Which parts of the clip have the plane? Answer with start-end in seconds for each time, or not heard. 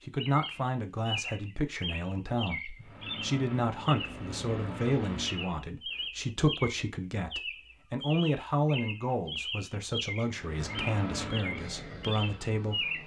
2.8-5.6, 10.3-13.0.